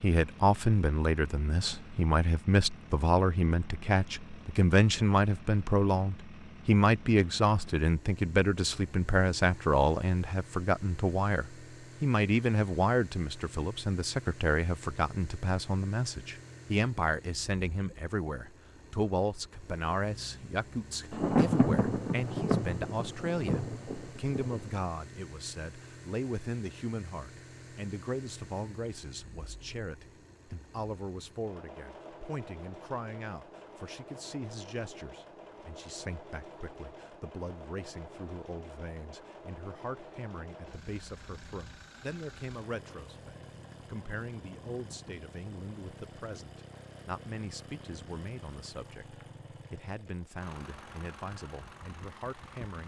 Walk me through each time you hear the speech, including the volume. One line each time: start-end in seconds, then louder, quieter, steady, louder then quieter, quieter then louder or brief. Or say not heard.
0.0-52.8 quieter.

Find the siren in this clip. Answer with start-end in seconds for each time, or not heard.
not heard.